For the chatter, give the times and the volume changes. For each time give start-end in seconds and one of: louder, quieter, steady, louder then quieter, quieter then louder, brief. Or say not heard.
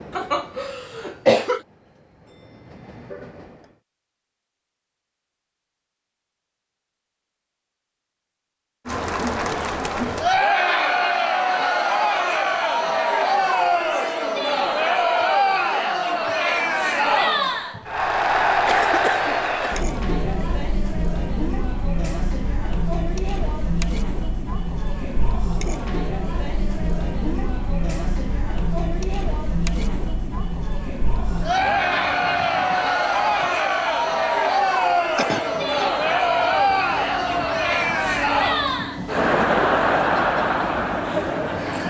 8.8-41.8 quieter then louder.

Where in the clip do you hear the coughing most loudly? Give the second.
1 s.